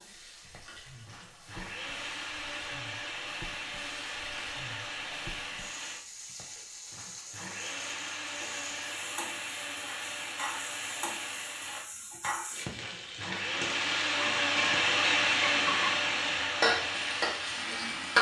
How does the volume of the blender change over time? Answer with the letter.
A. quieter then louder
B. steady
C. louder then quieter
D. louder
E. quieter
D.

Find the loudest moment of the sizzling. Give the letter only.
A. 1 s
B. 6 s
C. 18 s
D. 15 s
C.